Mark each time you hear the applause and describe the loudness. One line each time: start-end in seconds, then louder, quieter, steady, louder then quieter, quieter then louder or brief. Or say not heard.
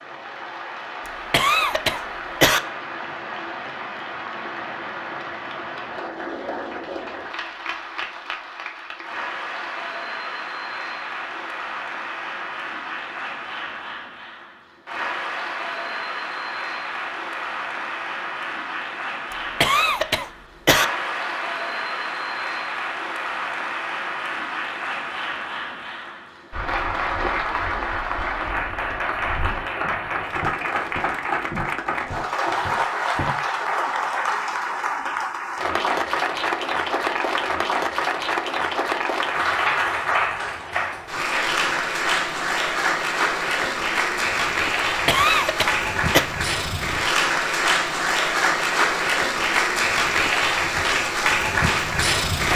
0.0-52.5 louder.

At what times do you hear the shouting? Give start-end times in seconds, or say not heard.
not heard.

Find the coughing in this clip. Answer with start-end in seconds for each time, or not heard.
1.1-2.6, 19.6-20.9, 45.0-46.2.